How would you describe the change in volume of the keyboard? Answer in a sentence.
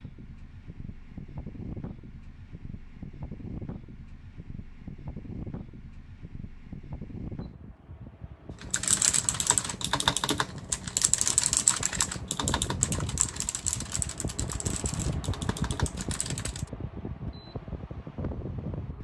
The loudness of the keyboard goes down.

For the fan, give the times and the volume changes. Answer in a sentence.
You can hear the fan from 0.0 to 18.9 s, getting louder.